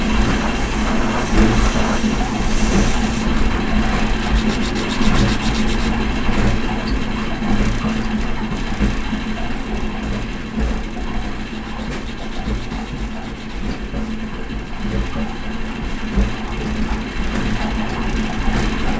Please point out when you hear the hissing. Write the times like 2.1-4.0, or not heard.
0.0-3.3.